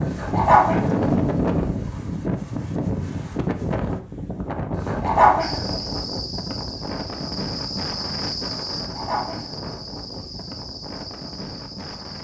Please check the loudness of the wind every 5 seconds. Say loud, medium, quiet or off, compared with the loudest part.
loud, medium, quiet.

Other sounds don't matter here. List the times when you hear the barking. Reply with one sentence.
The barking can be heard from 0.1 to 2.0 s, from 4.8 to 5.8 s and from 8.7 to 10.6 s.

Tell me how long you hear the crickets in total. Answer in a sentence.
You can hear the crickets for 7 seconds altogether.